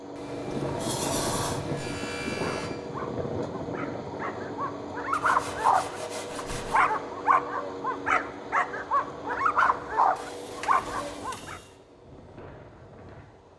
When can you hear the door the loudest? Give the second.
1 s.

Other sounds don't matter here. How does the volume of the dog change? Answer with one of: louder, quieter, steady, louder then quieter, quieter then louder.
louder.